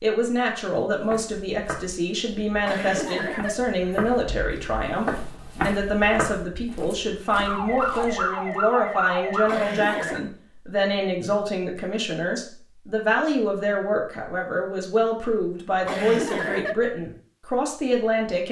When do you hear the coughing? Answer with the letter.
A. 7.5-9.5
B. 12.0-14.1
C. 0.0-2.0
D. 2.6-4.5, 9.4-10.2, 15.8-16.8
D.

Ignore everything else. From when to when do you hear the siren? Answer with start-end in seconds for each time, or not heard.
7.5-9.5.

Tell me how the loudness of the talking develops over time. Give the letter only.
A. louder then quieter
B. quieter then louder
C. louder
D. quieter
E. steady
E.